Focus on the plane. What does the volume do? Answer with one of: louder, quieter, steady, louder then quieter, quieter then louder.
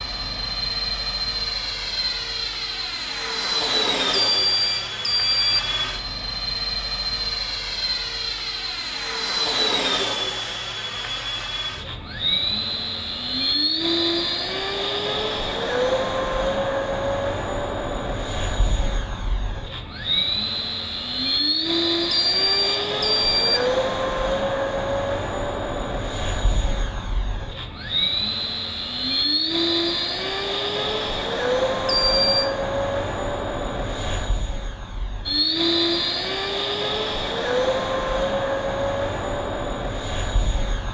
steady.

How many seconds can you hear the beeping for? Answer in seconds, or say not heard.
4 s.